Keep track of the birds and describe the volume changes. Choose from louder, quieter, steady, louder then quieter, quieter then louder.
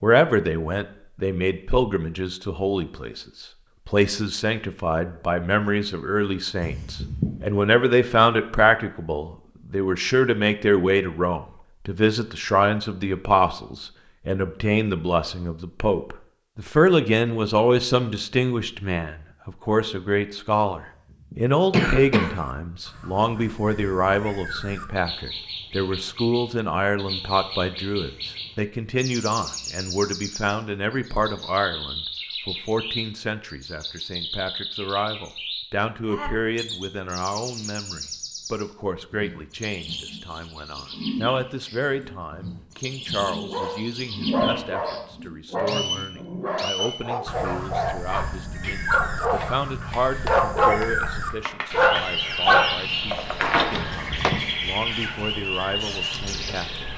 louder.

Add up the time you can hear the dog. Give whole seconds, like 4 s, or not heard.
11 s.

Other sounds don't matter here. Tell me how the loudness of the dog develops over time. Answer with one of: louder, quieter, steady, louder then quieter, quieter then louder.
louder.